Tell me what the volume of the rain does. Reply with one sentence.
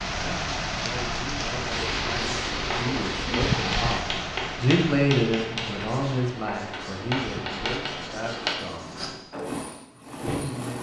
The loudness of the rain goes down.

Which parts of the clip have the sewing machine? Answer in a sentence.
The sewing machine can be heard from 9.3 to 10.7 s.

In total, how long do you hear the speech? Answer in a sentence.
The speech can be heard for 9 seconds in total.